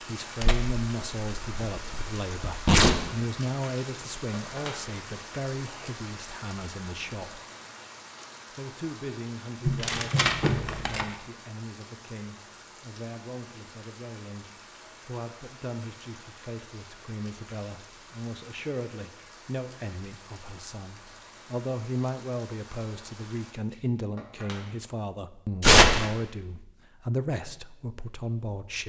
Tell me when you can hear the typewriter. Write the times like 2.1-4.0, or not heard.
not heard.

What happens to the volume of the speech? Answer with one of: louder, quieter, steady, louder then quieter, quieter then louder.
quieter then louder.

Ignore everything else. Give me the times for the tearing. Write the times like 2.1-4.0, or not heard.
0.4-3.0, 9.7-11.1, 25.6-26.1.